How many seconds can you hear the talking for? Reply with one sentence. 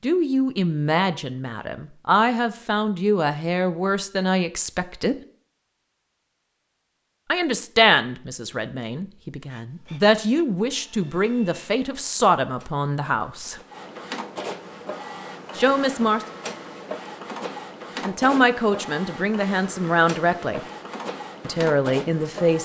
You can hear the talking for 16 seconds altogether.